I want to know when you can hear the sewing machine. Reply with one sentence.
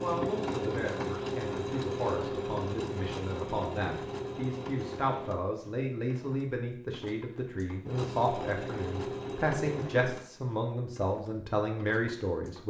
You can hear the sewing machine from 0.0 to 12.6 s.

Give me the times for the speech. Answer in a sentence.
The speech can be heard from 0.0 to 12.6 s.